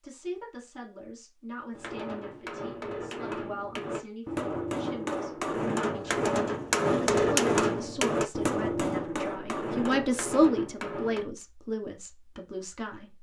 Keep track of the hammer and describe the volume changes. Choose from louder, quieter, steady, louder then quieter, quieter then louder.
louder then quieter.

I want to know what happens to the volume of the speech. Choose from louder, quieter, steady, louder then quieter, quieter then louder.
louder then quieter.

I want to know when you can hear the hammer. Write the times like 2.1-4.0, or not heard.
1.7-11.2.